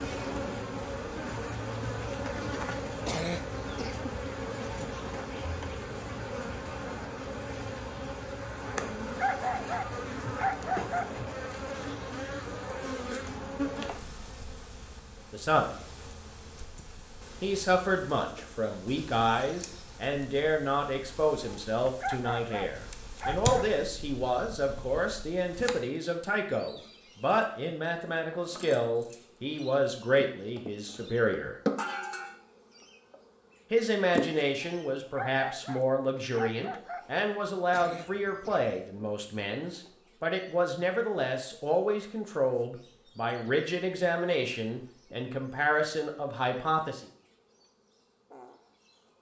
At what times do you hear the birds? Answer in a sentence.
The birds can't be heard in this clip.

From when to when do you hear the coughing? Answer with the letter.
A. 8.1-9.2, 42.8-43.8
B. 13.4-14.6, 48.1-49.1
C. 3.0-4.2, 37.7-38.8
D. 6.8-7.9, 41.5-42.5
C.